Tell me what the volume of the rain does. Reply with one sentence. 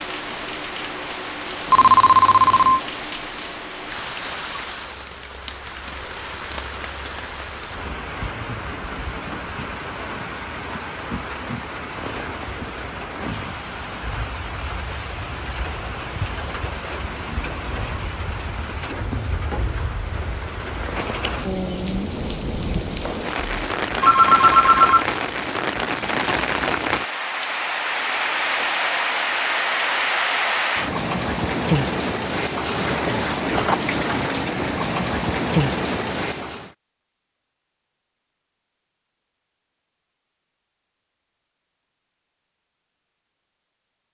The loudness of the rain goes up.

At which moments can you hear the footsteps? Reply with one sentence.
You can't hear the footsteps here.